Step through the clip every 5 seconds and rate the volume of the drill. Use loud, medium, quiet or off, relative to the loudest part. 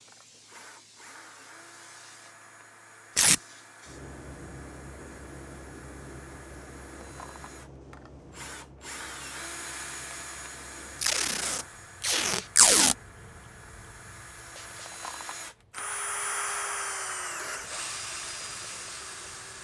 quiet, medium, medium, loud.